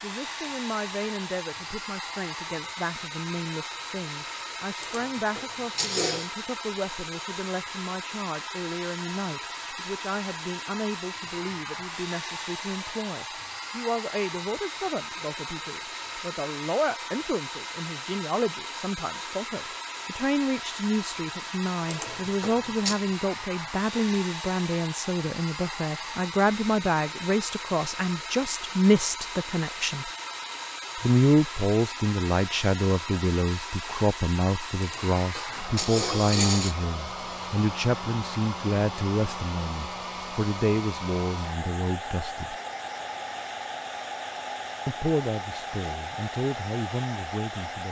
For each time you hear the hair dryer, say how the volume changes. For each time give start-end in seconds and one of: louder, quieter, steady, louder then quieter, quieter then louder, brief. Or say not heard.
0.0-47.8 steady.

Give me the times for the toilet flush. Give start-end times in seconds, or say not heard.
4.8-6.3, 21.9-23.0, 34.8-36.8.